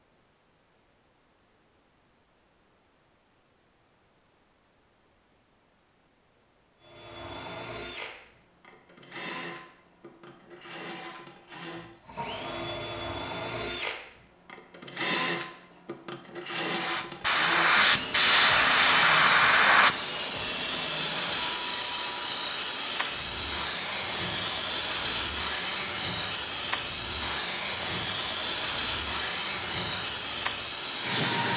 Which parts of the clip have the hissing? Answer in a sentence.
You can hear the hissing from 16.7 to 31.5 s.